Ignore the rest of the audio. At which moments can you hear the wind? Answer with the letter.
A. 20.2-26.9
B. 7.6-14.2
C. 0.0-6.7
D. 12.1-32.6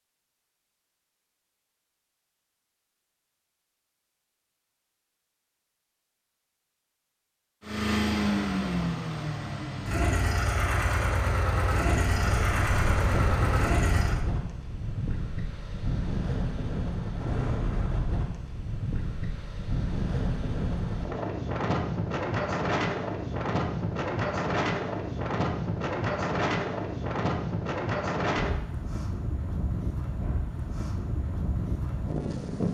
D.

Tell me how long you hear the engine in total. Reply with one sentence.
The engine can be heard for 7 seconds in total.